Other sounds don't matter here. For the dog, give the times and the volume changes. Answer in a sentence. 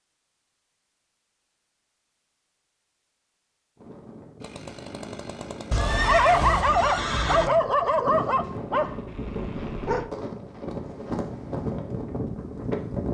You can hear the dog from 6.0 to 10.1 s, getting quieter.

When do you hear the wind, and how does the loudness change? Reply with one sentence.
You can hear the wind from 3.8 to 13.0 s, getting louder.